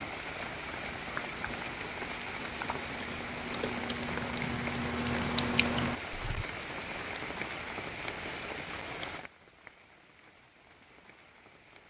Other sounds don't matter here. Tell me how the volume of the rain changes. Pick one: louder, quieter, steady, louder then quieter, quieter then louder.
quieter.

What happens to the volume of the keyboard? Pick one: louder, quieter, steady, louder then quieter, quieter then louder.
louder.